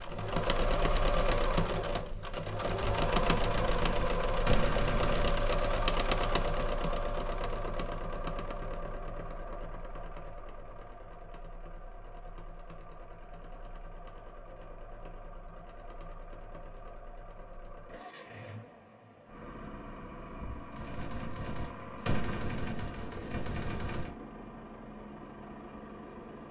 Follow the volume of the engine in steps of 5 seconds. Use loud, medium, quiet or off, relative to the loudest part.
loud, loud, quiet, quiet, quiet, quiet.